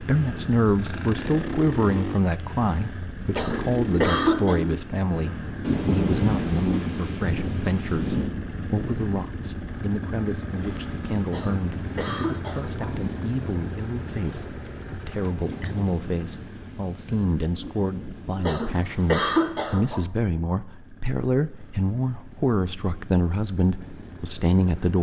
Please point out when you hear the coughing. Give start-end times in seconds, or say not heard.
3.3-4.6, 11.2-12.9, 18.4-20.1.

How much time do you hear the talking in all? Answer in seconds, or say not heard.
25 s.